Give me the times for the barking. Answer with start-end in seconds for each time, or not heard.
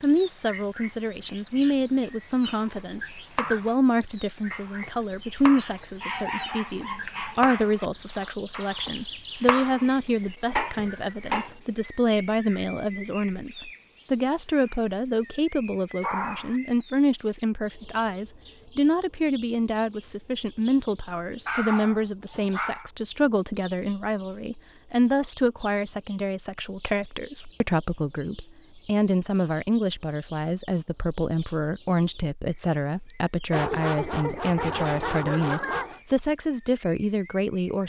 6.0-7.8, 16.0-16.6, 21.4-22.9, 33.5-36.0.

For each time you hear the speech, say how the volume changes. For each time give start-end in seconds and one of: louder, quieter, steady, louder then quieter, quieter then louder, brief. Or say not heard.
0.0-37.8 steady.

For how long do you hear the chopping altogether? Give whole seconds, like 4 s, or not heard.
6 s.